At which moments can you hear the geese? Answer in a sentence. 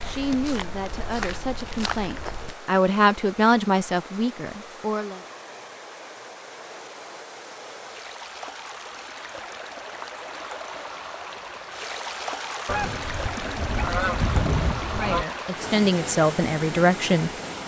You can hear the geese from 12.7 to 15.2 s.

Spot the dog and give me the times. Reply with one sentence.
The dog can't be heard in this clip.